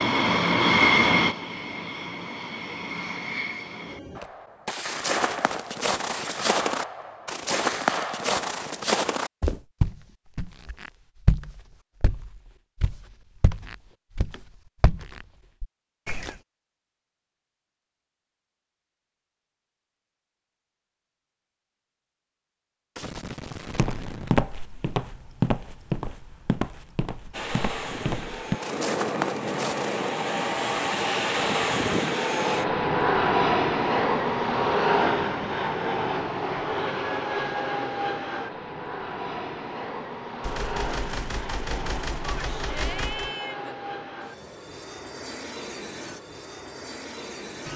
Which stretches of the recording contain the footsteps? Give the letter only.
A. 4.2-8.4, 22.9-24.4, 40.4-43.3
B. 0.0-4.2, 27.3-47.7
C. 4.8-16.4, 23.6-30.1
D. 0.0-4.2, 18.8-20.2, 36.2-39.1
C.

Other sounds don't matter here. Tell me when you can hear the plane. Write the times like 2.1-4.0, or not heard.
0.0-4.2, 27.3-47.7.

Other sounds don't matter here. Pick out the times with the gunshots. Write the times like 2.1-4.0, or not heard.
4.2-8.4, 22.9-24.4, 40.4-43.3.